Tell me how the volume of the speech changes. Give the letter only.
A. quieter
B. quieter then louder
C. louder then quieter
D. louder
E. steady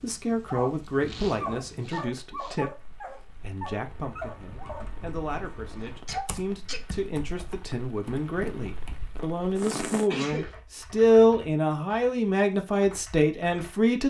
B.